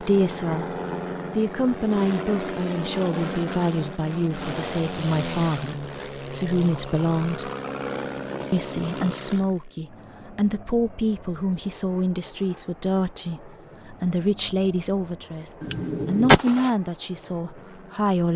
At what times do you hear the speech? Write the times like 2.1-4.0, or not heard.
0.0-0.7, 1.4-7.5, 8.5-18.3.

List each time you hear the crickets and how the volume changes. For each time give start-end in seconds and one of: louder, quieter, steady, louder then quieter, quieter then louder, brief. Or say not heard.
not heard.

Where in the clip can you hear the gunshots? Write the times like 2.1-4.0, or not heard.
15.6-16.7.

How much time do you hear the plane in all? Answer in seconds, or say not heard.
18 s.